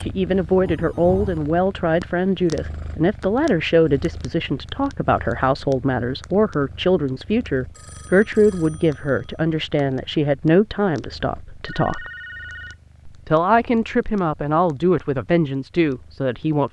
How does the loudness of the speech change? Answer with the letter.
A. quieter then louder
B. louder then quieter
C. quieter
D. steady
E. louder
D.